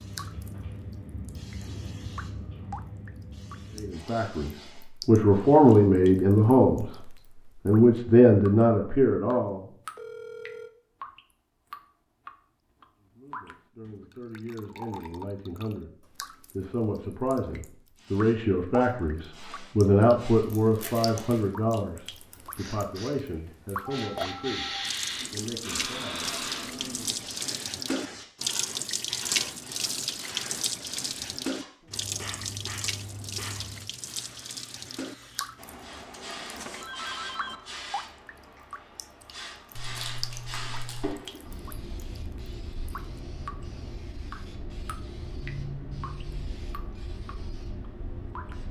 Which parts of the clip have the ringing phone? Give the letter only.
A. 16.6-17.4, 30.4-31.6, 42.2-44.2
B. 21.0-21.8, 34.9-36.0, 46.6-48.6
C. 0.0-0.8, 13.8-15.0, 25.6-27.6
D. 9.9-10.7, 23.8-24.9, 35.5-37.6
D.